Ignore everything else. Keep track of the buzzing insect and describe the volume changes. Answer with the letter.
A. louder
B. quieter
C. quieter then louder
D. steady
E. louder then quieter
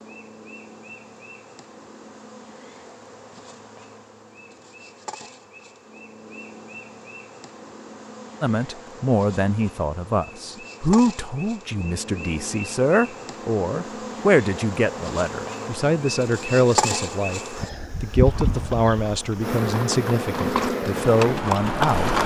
A.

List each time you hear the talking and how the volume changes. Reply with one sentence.
You can hear the talking from 8.4 to 22.2 s, at a steady volume.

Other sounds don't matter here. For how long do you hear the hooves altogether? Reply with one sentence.
You can hear the hooves for 4 seconds altogether.